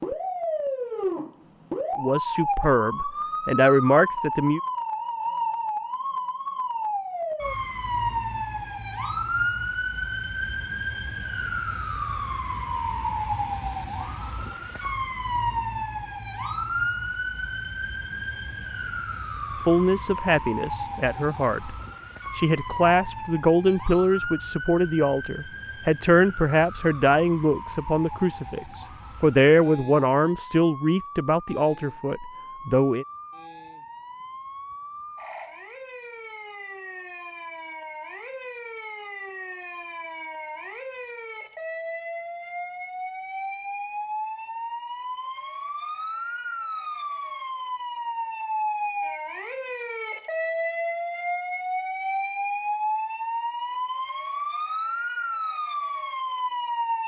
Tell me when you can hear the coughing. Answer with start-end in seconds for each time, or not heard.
not heard.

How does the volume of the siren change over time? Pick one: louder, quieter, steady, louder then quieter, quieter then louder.
quieter then louder.